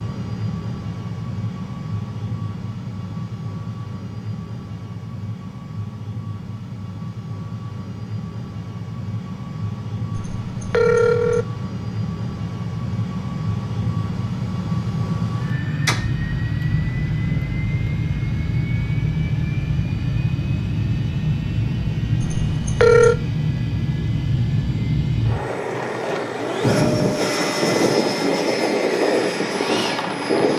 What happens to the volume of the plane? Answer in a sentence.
The volume of the plane goes up.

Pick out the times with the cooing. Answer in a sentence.
The cooing can't be heard in this clip.